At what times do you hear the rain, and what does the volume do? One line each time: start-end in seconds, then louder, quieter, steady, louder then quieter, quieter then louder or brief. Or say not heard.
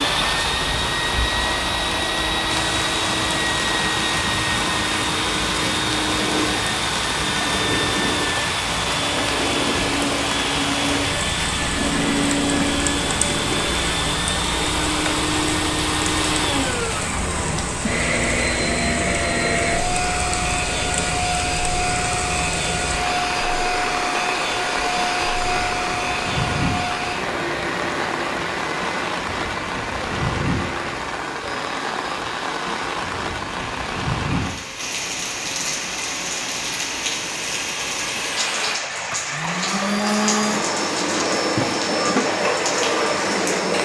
0.0-43.7 steady.